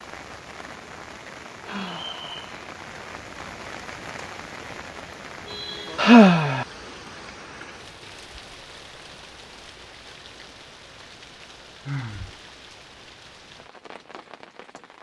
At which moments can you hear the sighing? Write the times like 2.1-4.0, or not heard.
1.6-2.5, 6.0-6.7, 11.8-12.3.